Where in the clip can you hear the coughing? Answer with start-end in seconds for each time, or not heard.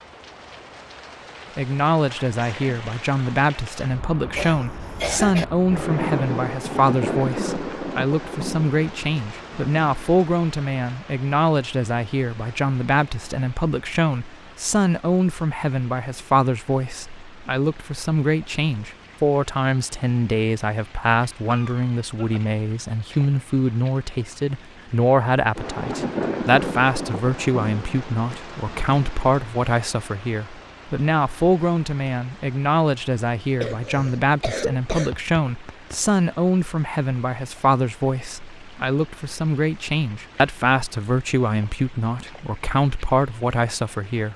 4.3-5.5, 21.4-22.4, 33.6-36.0.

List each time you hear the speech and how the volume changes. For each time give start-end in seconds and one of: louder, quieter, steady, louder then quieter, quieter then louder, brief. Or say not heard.
1.6-44.3 steady.